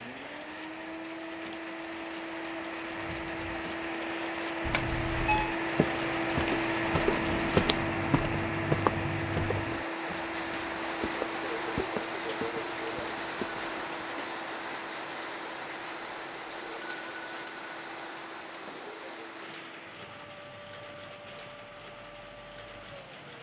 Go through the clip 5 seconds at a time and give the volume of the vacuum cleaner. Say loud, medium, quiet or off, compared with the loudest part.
medium, loud, medium, quiet, quiet.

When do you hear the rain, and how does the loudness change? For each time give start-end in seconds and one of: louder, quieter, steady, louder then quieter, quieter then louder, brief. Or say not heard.
0.0-23.3 louder then quieter.